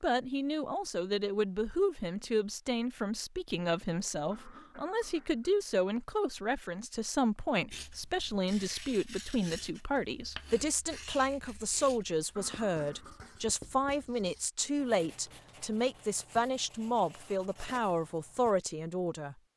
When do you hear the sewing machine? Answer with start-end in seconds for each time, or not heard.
not heard.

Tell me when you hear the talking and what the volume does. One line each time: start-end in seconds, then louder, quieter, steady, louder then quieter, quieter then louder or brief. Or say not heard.
0.0-19.4 steady.